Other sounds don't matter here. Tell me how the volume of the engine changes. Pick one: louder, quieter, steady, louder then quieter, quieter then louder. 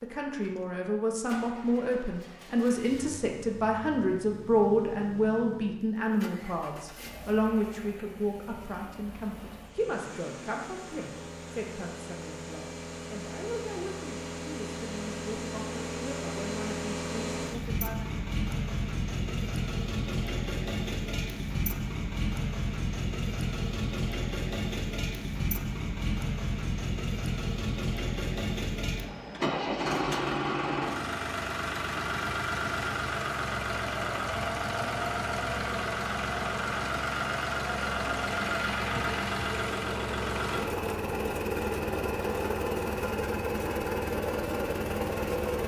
louder.